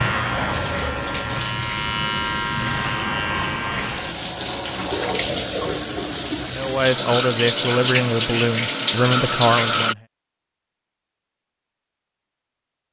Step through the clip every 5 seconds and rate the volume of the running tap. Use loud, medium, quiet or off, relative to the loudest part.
medium, loud, off.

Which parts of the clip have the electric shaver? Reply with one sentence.
The electric shaver can be heard from 0.0 to 4.2 s.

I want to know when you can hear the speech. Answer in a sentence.
You can hear the speech from 6.5 to 10.0 s.